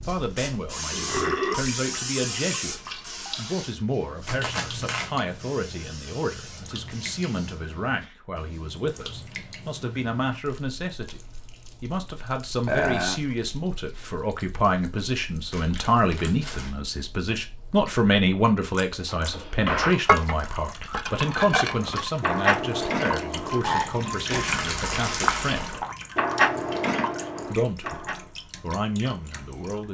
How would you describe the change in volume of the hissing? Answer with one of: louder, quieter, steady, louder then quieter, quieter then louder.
quieter.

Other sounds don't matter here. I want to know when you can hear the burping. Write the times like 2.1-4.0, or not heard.
0.9-1.7, 12.7-13.2, 23.6-24.5.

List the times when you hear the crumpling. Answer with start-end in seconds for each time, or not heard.
4.2-5.1, 15.5-16.7, 24.3-25.8.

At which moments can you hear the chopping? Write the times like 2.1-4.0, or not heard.
not heard.